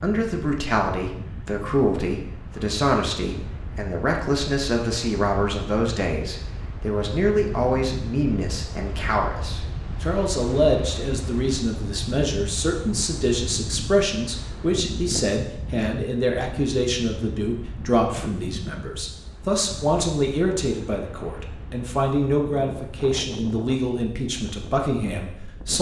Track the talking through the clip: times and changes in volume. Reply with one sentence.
The talking can be heard from 0.0 to 25.7 s, at a steady volume.